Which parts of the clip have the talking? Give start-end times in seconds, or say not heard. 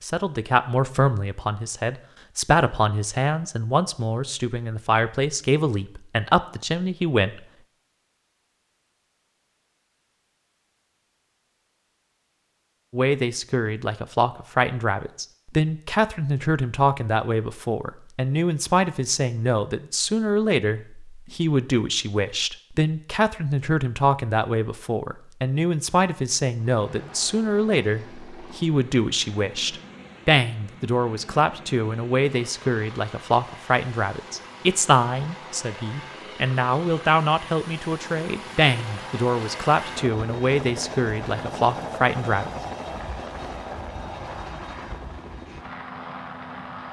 0.0-7.4, 12.9-42.5.